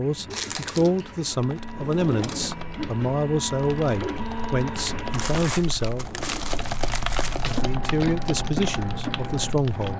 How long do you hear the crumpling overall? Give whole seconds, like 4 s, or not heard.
3 s.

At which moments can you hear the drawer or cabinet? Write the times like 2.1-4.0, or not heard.
1.7-3.0, 5.9-7.7.